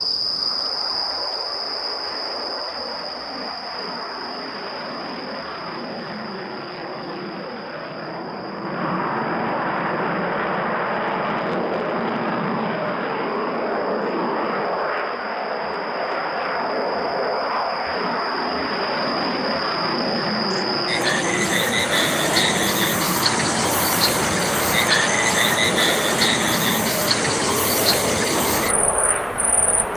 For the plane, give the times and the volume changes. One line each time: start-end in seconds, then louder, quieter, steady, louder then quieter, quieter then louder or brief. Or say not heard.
0.0-29.9 louder.